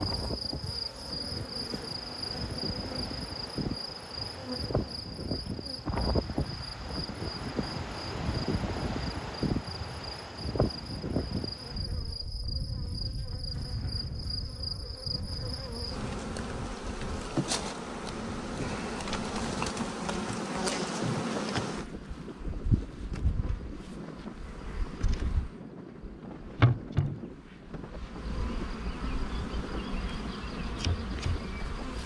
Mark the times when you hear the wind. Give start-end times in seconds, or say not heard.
0.0-32.0.